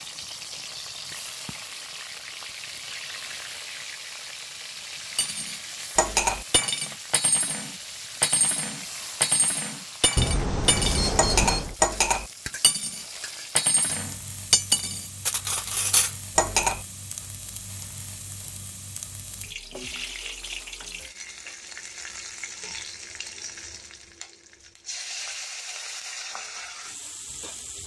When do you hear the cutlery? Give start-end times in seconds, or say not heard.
5.2-16.8.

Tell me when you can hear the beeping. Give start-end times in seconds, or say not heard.
10.2-11.8.